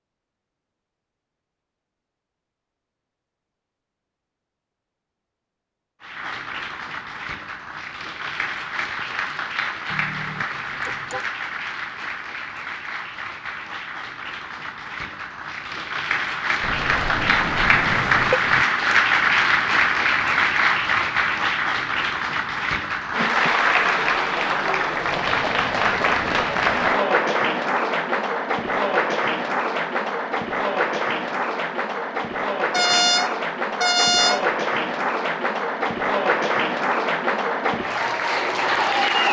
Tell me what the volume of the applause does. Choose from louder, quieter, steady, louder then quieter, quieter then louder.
louder.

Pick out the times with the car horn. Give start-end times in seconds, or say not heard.
9.9-11.2, 16.6-18.6, 32.7-34.5.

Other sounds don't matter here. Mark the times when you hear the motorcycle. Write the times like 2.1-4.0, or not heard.
not heard.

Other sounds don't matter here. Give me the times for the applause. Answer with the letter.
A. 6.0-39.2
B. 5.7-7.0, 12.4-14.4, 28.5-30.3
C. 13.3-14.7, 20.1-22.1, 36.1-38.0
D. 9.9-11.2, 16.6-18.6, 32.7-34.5
A.